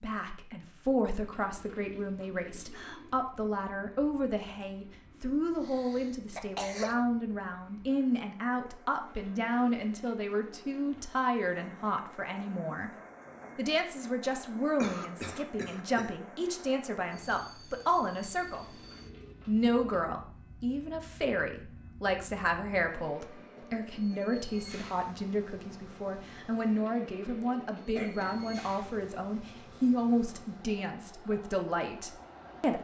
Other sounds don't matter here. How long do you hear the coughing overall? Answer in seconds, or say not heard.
3 s.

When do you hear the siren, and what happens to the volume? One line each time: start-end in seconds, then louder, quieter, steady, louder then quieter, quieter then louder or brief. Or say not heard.
not heard.